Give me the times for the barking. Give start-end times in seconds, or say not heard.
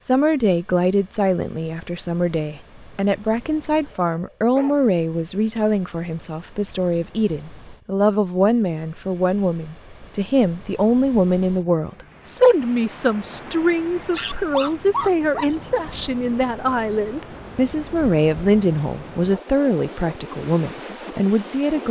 3.9-4.9, 14.1-16.1.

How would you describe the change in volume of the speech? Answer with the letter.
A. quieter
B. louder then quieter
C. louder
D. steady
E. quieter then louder
D.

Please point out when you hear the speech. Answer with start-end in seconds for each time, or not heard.
0.0-21.8.